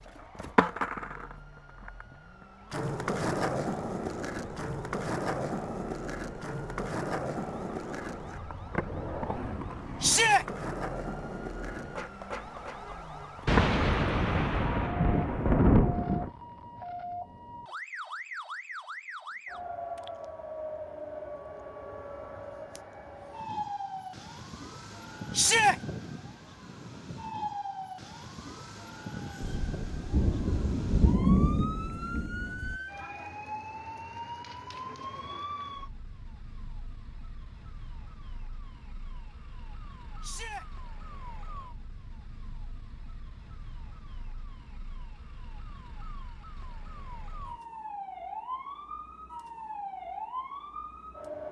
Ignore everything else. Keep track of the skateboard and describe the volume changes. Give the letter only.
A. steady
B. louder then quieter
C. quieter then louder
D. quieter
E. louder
D.